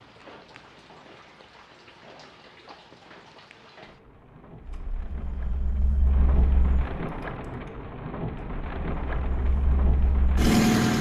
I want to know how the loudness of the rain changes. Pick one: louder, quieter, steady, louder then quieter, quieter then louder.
louder.